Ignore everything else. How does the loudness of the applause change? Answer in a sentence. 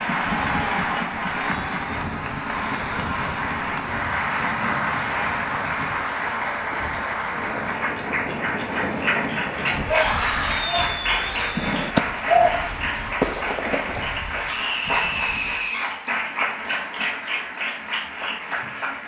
The volume of the applause stays about the same.